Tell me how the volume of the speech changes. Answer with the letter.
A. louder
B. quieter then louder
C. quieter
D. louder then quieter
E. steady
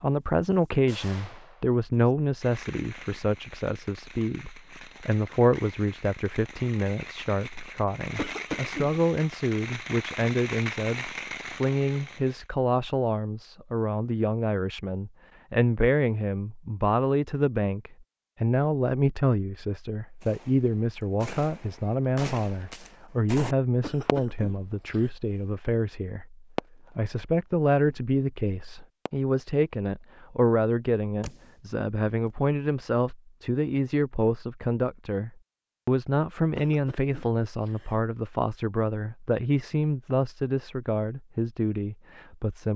E.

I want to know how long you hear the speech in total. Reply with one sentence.
You can hear the speech for 43 seconds altogether.